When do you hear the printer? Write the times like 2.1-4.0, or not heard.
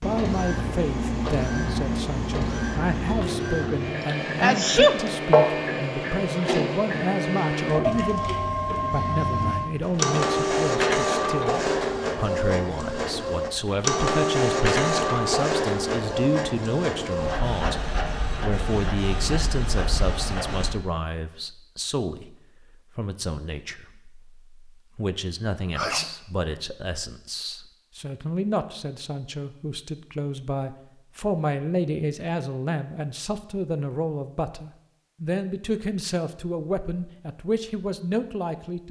0.0-20.8.